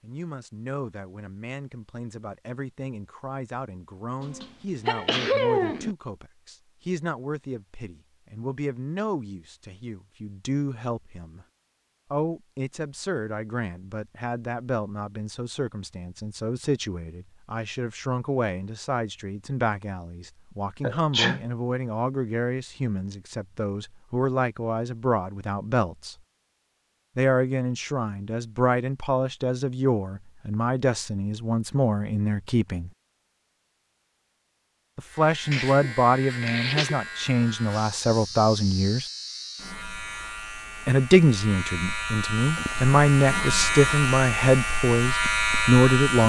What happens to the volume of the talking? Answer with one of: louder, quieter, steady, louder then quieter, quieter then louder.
louder.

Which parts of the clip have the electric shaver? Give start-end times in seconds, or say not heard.
35.0-46.2.